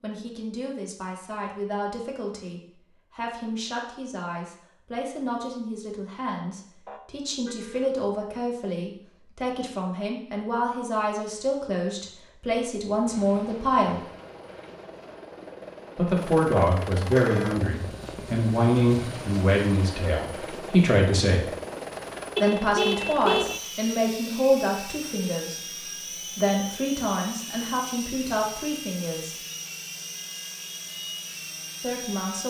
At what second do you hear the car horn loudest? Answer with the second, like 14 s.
23 s.